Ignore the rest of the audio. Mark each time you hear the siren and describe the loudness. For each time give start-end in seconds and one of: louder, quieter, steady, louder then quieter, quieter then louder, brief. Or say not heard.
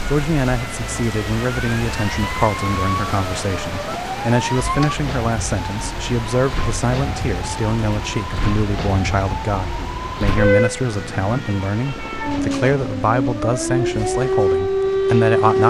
0.0-15.6 louder.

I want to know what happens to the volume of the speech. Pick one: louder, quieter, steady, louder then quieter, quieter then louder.
steady.